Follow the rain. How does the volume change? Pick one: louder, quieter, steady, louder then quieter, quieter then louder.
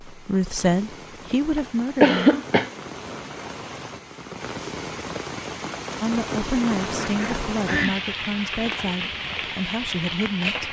louder.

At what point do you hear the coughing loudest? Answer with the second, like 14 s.
2 s.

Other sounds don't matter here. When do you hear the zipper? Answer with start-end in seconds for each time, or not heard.
not heard.